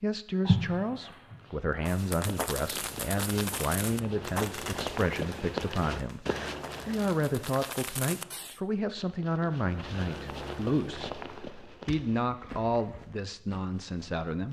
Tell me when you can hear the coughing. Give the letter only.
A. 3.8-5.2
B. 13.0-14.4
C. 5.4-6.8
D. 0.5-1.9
D.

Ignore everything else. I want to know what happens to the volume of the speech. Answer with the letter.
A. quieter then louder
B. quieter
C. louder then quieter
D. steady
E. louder
D.